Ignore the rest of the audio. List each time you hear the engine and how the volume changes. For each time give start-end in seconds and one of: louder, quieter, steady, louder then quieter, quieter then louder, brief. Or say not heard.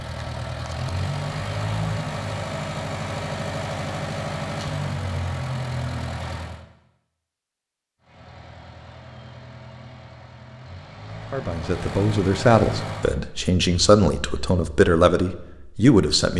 0.0-6.7 steady
8.0-13.2 louder.